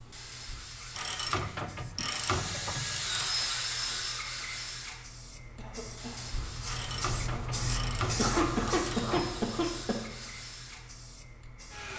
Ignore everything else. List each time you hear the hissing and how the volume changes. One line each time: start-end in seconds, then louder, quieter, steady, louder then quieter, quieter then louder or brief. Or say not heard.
0.0-11.9 louder then quieter.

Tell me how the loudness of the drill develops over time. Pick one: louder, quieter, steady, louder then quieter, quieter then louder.
louder then quieter.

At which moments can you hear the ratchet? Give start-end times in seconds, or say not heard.
0.9-3.5, 6.7-9.5.